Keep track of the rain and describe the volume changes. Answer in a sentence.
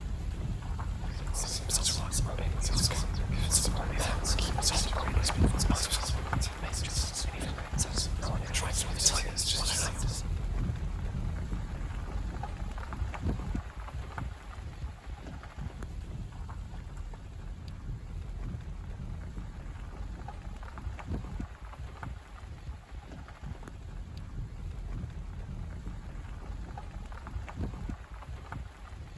The loudness of the rain goes down.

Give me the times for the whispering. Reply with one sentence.
You can hear the whispering from 1.1 to 10.2 s.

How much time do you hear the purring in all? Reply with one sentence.
You can't hear the purring here.